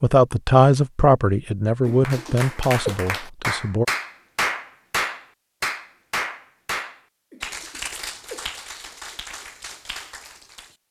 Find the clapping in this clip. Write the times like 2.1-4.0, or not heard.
1.9-10.8.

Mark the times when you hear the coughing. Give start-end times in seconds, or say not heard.
1.9-3.0, 7.3-8.5.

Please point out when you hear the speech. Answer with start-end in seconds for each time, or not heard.
0.0-3.9.